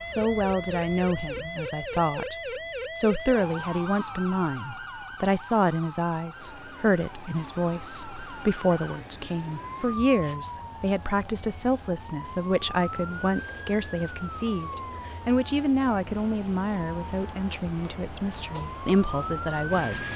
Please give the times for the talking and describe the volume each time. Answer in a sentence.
You can hear the talking briefly from 0.0 to 2.4 s; and from 3.0 to 20.1 s, at a steady volume.